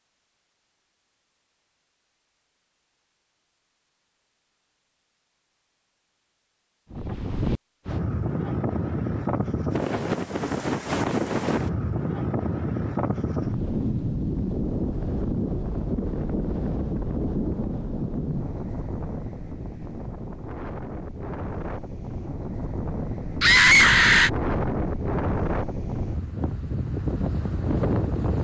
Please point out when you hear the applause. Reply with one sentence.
You can't hear the applause here.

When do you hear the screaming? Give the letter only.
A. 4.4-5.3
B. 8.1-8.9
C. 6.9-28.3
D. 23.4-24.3
D.